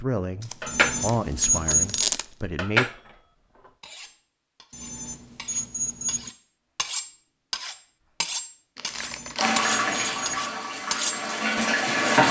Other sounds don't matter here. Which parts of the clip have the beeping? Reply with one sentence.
The beeping can be heard from 0.7 to 2.1 s, from 4.7 to 6.3 s and from 8.9 to 10.5 s.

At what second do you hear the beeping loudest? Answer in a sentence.
The loudest moment of the beeping is at 2 seconds.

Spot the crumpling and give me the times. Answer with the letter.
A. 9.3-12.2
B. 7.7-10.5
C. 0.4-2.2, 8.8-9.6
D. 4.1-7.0
C.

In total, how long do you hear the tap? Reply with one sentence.
The tap can be heard for 3 seconds in total.